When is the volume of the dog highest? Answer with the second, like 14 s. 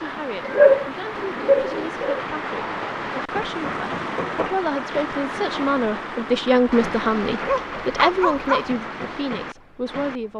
1 s.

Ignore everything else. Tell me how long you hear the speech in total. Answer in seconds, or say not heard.
10 s.